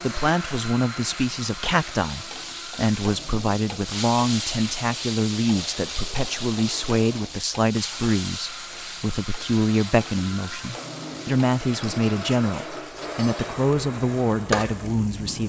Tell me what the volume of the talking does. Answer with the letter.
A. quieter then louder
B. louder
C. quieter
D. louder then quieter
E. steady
E.